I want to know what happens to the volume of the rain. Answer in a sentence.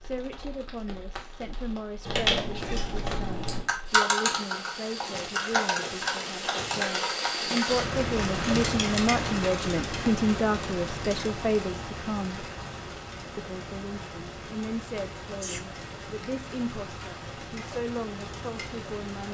The volume of the rain goes up, then down.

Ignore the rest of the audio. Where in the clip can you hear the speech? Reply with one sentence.
The speech can be heard from 0.0 to 12.4 s and from 13.3 to 19.2 s.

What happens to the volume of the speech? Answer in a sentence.
The loudness of the speech goes up, then down.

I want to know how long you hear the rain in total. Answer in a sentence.
The rain can be heard for 19 seconds in total.